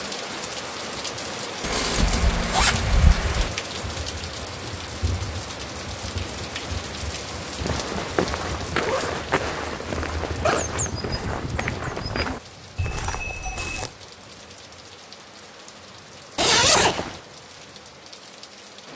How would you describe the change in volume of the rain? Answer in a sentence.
The volume of the rain goes down.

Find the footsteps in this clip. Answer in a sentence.
You can hear the footsteps from 7.6 to 13.9 s.